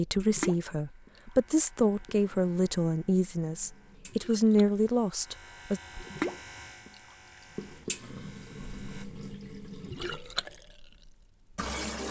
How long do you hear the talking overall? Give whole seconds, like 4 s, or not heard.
6 s.